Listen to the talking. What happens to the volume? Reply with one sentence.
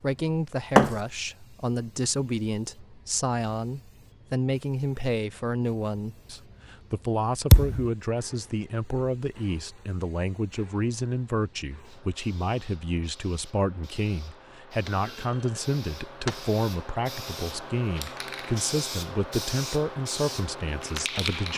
The volume of the talking stays about the same.